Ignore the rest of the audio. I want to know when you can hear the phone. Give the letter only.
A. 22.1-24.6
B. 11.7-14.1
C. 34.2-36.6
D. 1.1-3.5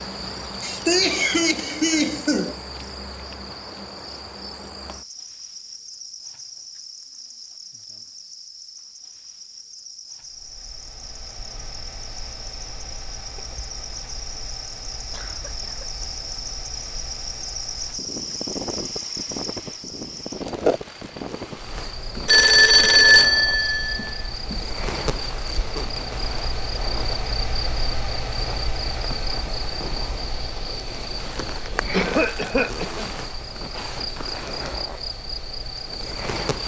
A.